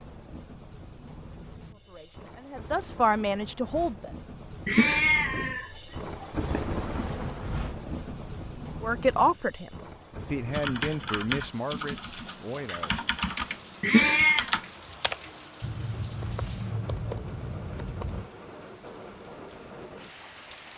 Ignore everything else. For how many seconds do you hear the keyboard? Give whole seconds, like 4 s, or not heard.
8 s.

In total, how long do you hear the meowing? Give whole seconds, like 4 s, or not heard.
3 s.